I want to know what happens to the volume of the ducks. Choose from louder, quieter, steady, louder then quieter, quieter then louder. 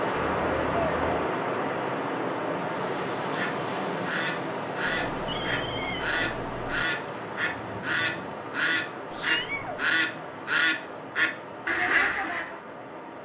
louder.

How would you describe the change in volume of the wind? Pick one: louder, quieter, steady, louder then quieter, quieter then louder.
quieter.